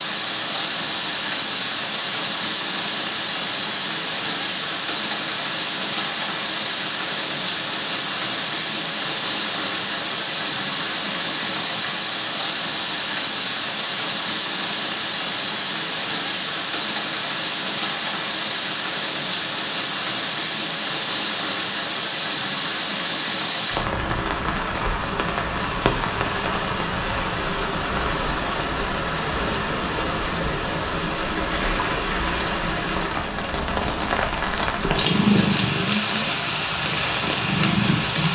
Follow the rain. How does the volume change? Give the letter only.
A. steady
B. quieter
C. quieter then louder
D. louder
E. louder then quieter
A.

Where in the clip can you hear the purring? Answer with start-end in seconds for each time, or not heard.
34.9-38.3.